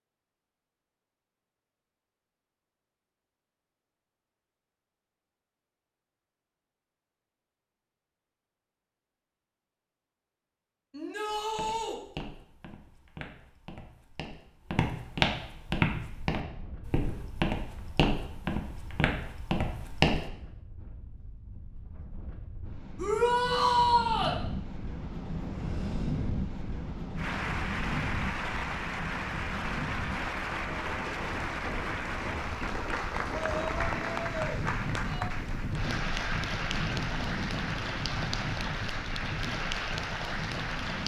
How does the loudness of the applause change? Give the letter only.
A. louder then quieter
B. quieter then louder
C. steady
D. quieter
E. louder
C.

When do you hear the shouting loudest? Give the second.
24 s.